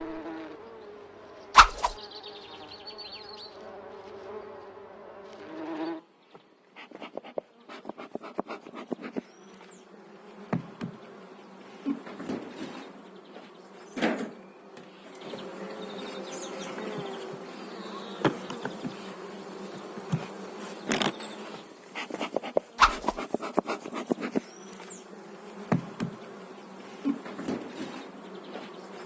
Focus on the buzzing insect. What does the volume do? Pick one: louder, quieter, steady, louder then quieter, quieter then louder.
louder.